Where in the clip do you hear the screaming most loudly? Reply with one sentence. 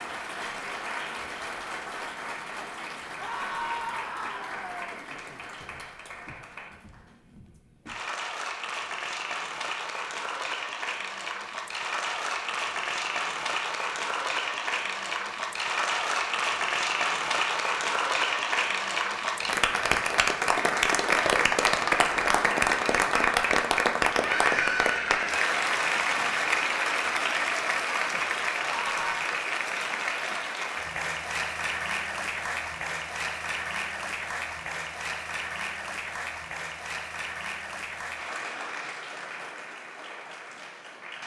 The loudest moment of the screaming is at 25 seconds.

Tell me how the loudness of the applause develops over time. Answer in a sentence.
The loudness of the applause goes up, then down.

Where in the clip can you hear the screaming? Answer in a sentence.
You can hear the screaming from 3.1 to 5.0 s, from 24.2 to 25.5 s and from 28.6 to 29.1 s.